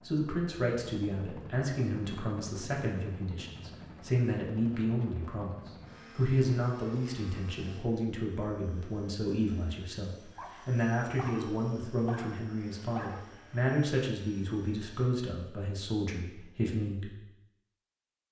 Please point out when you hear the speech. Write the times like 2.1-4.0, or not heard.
0.1-17.1.